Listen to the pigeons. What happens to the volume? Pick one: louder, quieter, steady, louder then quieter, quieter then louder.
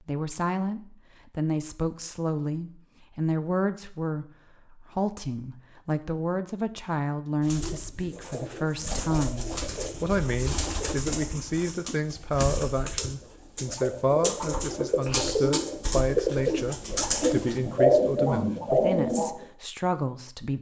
louder.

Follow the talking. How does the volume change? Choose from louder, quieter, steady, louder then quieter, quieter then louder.
steady.